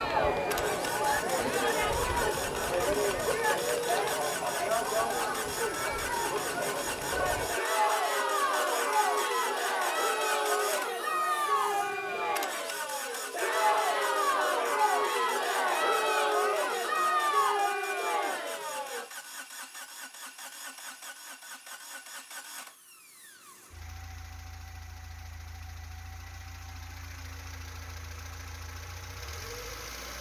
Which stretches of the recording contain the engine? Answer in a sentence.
You can hear the engine from 0.0 to 30.1 s.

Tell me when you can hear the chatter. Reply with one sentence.
The chatter can be heard from 0.0 to 19.1 s.